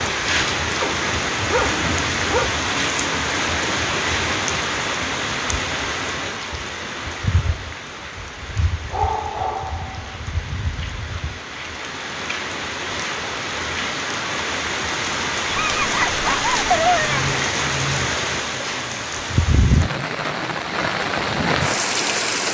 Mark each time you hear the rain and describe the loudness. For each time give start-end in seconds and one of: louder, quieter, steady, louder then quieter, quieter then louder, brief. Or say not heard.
0.0-22.5 quieter then louder.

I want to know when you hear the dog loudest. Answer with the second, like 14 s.
17 s.